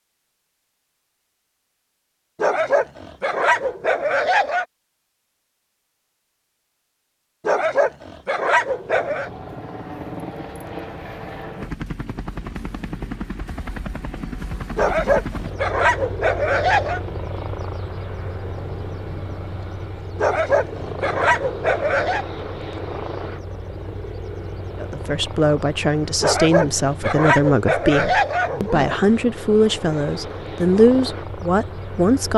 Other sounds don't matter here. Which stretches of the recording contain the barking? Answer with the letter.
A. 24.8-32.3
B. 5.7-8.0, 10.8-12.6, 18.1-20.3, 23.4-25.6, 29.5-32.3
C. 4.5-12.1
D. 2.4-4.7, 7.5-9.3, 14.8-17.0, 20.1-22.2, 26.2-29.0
D.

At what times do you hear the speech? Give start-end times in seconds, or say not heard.
24.8-32.3.